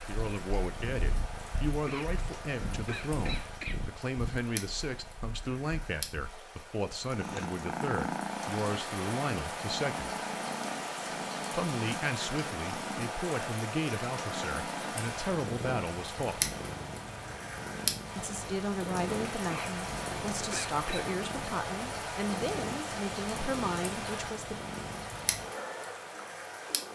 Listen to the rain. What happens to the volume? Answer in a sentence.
The loudness of the rain goes up.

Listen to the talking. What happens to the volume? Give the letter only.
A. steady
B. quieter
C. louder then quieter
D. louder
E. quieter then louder
A.